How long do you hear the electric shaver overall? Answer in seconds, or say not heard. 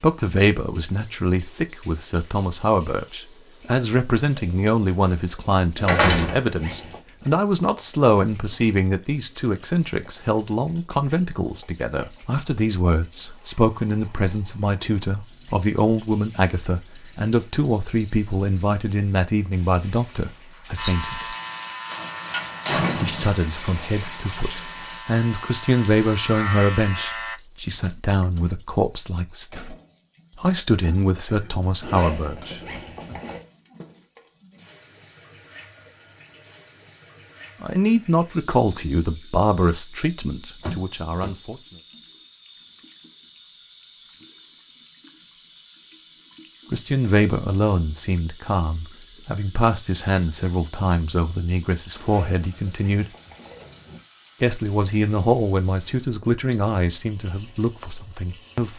7 s.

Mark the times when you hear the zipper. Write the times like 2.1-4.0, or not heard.
5.8-7.0, 31.8-33.5, 52.0-54.0.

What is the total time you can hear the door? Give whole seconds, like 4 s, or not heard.
3 s.